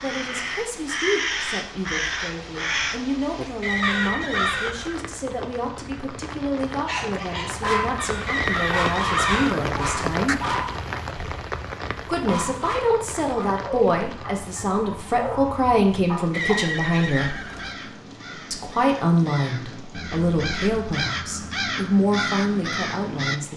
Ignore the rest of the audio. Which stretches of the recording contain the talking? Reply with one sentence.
The talking can be heard from 0.0 to 10.3 s, from 12.1 to 17.4 s and from 18.5 to 23.5 s.